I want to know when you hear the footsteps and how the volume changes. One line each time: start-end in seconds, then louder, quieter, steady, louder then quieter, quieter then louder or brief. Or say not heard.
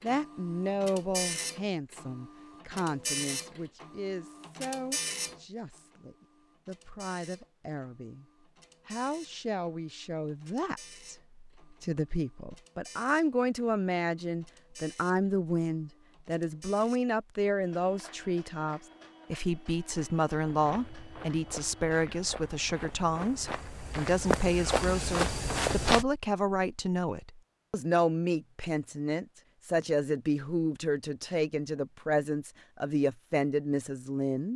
20.4-26.1 louder.